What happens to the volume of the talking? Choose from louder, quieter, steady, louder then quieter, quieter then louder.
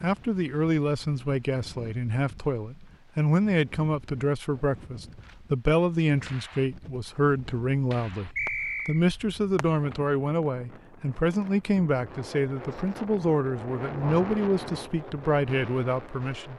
steady.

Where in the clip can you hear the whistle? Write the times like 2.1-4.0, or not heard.
8.3-9.0.